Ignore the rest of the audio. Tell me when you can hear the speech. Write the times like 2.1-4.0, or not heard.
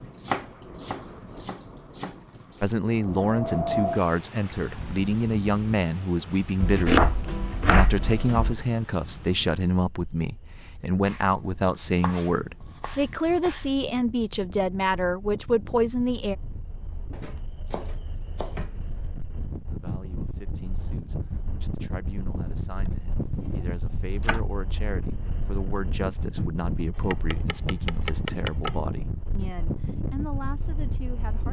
2.6-16.4, 19.7-31.4.